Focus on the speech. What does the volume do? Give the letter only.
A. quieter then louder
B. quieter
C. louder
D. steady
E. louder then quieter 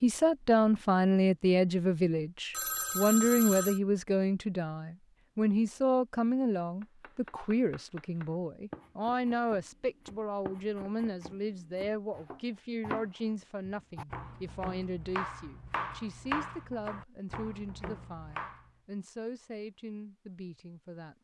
B.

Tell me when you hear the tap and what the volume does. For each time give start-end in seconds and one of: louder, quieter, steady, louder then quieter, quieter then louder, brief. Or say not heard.
not heard.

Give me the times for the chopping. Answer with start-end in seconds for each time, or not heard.
6.8-18.7.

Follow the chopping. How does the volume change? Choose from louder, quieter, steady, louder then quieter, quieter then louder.
louder.